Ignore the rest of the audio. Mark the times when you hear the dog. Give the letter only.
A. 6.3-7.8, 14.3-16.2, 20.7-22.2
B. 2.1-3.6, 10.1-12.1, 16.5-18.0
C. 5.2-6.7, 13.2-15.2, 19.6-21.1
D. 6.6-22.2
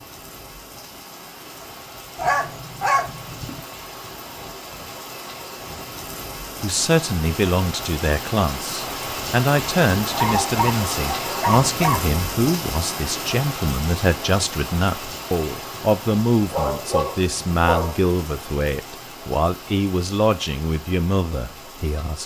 B.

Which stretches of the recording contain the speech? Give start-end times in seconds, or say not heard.
6.6-22.2.